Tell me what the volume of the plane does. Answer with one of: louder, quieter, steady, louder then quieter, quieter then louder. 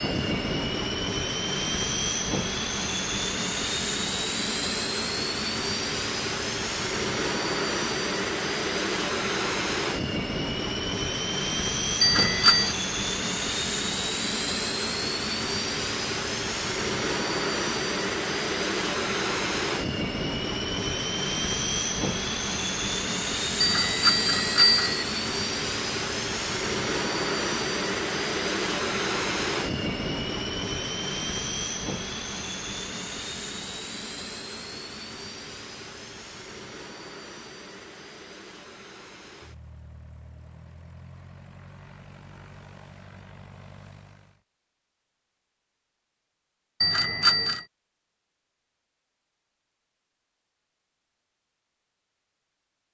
quieter.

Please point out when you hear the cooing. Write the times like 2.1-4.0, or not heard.
not heard.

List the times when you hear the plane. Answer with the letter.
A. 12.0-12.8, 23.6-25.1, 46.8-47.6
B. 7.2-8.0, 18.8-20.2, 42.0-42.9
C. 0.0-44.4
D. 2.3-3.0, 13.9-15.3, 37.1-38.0
C.